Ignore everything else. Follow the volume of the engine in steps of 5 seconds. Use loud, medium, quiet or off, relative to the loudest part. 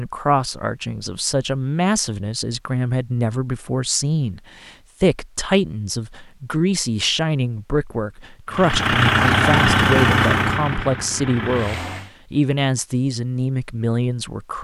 off, loud, medium.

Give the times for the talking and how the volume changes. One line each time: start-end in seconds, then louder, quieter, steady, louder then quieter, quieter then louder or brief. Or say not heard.
0.0-14.5 steady.